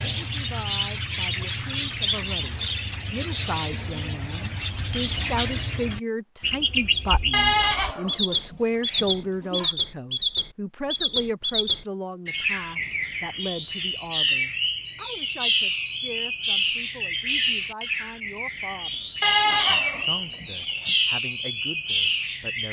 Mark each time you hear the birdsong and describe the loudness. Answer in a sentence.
The birdsong can be heard from 0.0 to 22.6 s, at a steady volume.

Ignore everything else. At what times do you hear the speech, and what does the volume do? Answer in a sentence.
You can hear the speech from 0.0 to 22.6 s, getting louder then quieter.